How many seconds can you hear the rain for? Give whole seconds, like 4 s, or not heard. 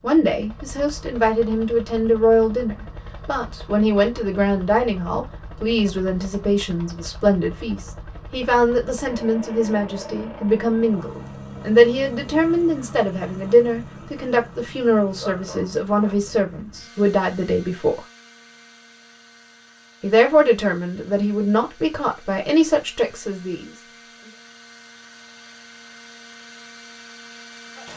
not heard.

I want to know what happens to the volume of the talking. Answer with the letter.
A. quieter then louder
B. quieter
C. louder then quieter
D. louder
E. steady
E.